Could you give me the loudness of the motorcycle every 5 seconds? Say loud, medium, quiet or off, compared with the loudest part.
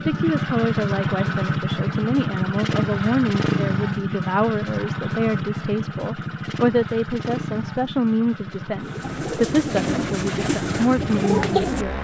loud, medium, medium.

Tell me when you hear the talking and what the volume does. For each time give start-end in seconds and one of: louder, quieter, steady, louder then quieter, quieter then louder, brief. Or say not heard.
0.1-11.9 steady.